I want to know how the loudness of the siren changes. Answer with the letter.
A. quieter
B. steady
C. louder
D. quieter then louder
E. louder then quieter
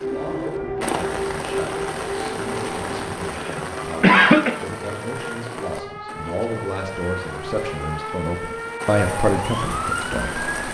D.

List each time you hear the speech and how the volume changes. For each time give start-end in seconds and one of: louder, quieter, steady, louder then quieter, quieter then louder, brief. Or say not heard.
0.0-10.5 louder.